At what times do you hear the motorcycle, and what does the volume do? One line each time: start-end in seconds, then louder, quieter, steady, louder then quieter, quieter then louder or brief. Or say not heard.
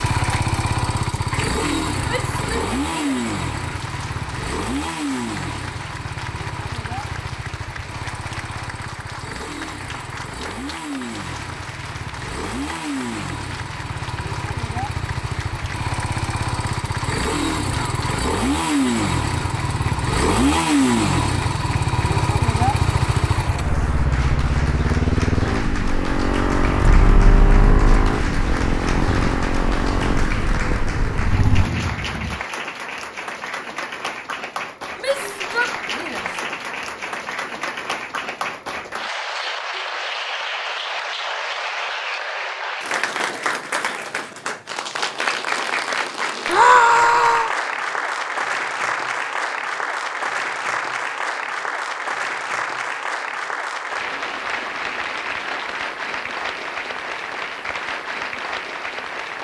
0.0-32.4 quieter then louder.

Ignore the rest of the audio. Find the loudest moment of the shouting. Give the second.
47 s.